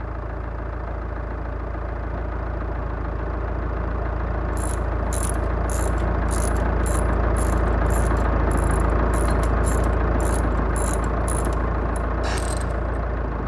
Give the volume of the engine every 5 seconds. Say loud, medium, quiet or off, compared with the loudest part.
medium, loud, loud.